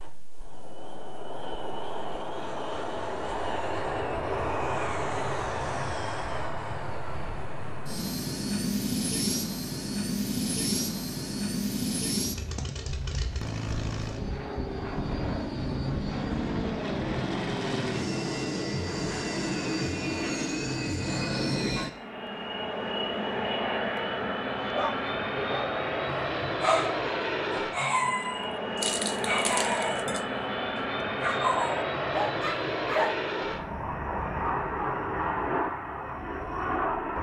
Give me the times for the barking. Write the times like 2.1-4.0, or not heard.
24.8-33.2.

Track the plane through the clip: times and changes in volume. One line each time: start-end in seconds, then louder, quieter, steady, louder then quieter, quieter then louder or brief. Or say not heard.
0.0-37.1 steady.